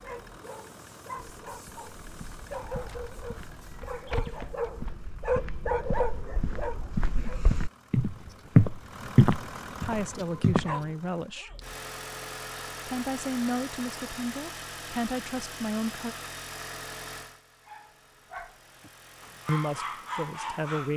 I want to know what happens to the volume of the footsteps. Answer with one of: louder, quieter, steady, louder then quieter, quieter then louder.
louder.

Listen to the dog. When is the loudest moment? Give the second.
6 s.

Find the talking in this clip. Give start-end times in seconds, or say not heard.
9.8-11.5, 12.8-16.1, 19.4-20.9.